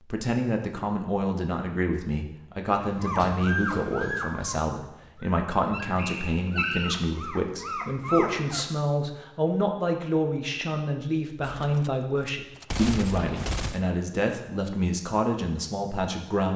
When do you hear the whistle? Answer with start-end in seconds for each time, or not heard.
6.0-7.0.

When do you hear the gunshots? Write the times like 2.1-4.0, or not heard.
11.4-13.9.